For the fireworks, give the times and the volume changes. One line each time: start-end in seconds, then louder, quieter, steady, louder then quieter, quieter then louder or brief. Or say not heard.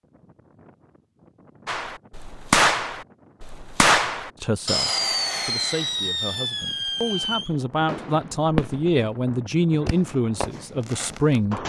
1.6-9.0 quieter
9.8-11.6 brief.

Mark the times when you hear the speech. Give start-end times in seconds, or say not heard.
4.4-11.6.